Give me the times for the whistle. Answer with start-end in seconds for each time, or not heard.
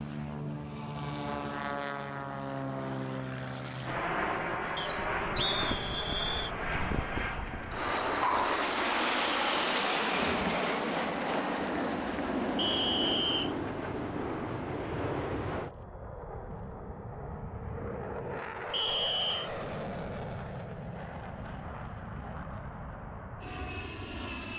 4.8-6.5, 12.6-13.6, 18.7-19.5.